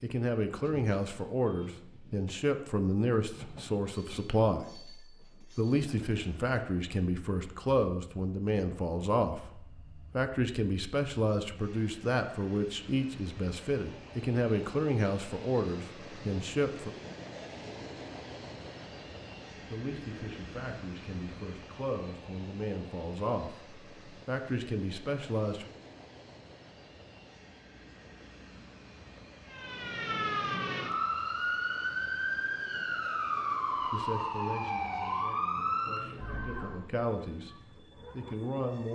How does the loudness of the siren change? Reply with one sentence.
The loudness of the siren stays about the same.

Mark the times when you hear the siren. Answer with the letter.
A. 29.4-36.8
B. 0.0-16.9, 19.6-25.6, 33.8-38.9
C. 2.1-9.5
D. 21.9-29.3
A.